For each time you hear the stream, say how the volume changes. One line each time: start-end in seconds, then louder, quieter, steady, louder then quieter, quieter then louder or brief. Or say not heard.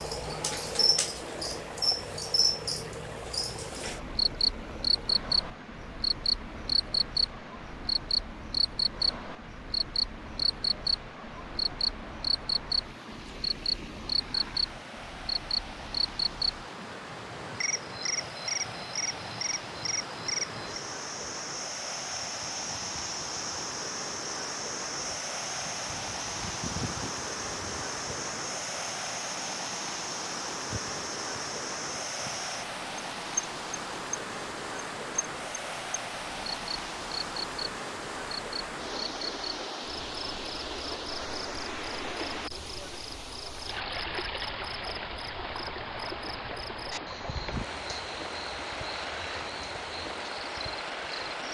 0.0-51.4 louder.